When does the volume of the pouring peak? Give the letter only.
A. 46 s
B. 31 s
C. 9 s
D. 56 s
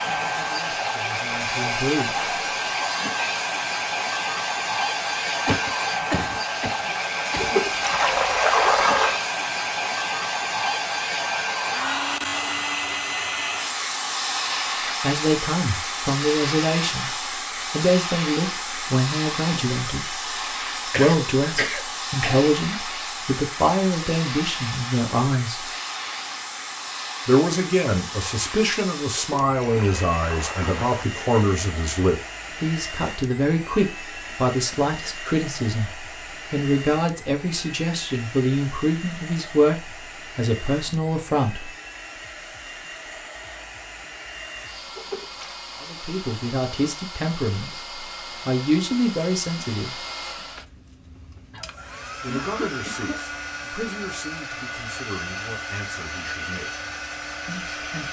C.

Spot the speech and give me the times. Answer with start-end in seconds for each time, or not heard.
0.1-2.1, 15.0-25.6, 27.2-41.7, 45.8-50.0, 52.2-56.8, 57.5-58.0.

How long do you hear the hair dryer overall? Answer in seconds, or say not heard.
58 s.